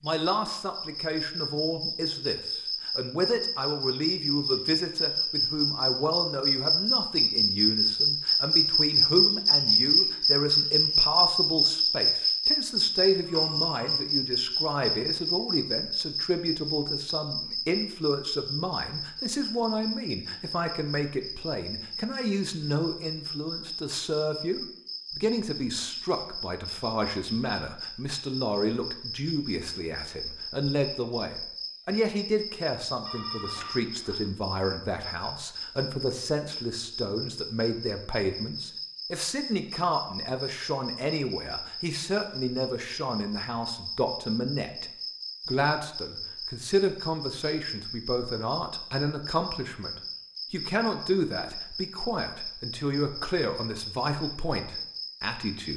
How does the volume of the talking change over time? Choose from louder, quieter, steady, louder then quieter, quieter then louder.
steady.